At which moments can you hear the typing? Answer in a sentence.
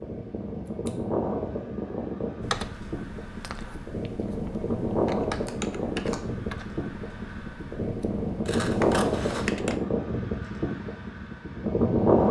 The typing can be heard from 2.4 to 9.8 s.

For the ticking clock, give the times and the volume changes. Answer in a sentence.
The ticking clock can't be heard in this clip.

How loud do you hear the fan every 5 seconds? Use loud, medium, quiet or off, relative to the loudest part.
medium, loud, loud.